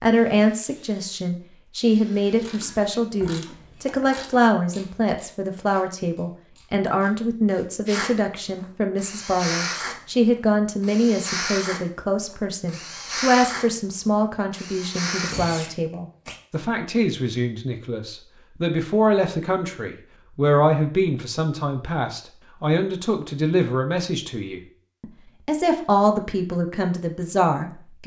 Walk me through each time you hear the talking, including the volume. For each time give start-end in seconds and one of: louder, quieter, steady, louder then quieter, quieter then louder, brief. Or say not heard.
0.0-28.0 steady.